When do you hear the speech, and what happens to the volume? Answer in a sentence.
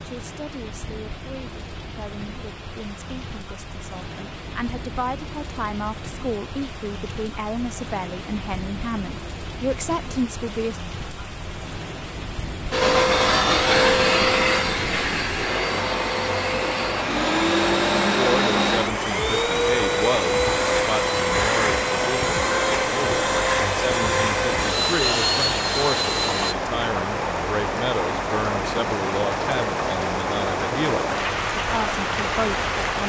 You can hear the speech from 0.0 to 10.8 s, getting louder; and from 18.1 to 33.0 s, at a steady volume.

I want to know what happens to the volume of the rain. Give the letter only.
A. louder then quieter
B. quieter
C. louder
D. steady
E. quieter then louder
C.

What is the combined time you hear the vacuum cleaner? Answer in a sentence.
The vacuum cleaner can be heard for 14 seconds in total.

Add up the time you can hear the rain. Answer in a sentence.
You can hear the rain for 33 seconds altogether.